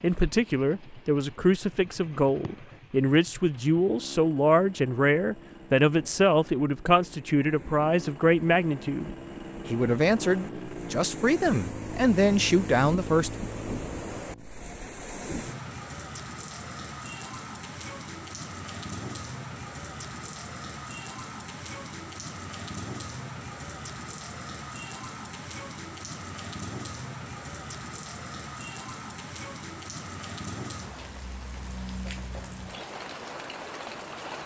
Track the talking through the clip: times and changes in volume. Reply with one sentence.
The talking can be heard from 0.0 to 13.3 s, at a steady volume.